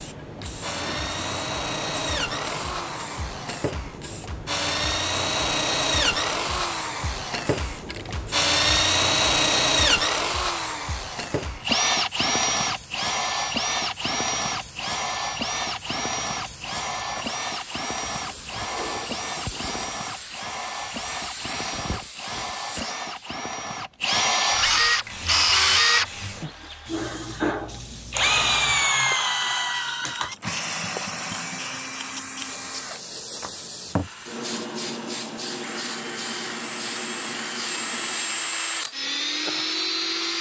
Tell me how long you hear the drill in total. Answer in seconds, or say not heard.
40 s.